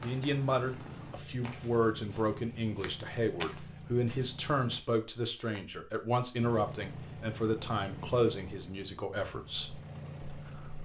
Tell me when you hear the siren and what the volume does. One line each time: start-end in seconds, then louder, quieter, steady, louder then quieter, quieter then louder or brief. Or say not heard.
not heard.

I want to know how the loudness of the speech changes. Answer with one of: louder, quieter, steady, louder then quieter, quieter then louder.
quieter.